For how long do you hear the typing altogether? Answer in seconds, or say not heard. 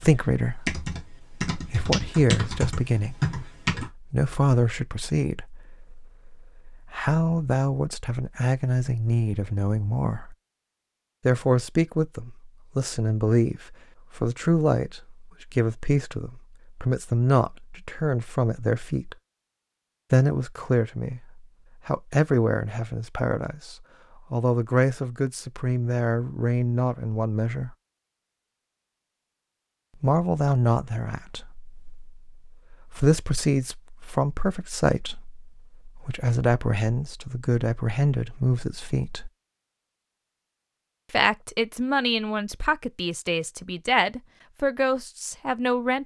4 s.